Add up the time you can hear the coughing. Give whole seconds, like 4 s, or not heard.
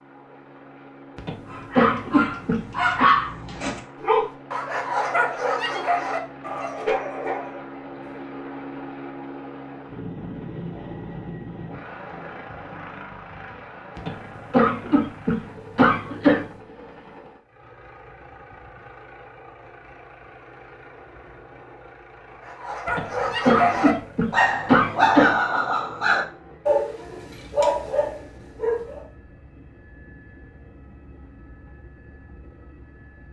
7 s.